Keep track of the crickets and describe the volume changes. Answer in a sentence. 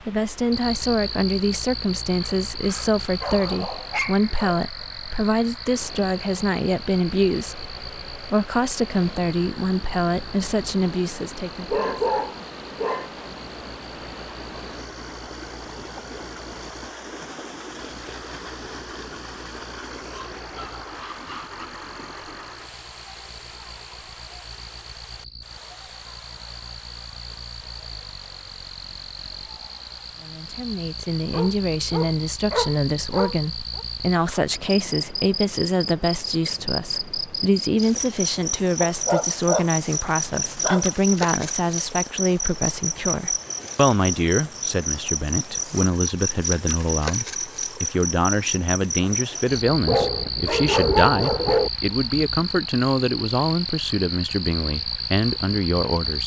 The loudness of the crickets goes down, then up.